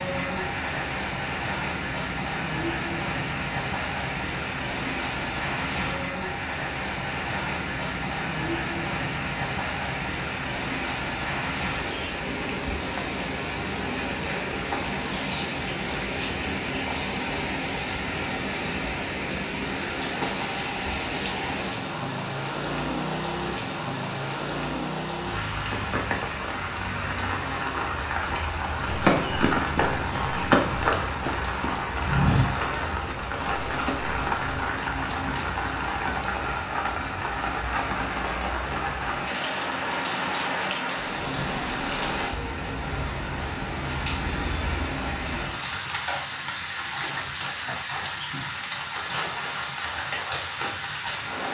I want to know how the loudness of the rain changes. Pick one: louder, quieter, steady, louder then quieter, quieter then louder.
steady.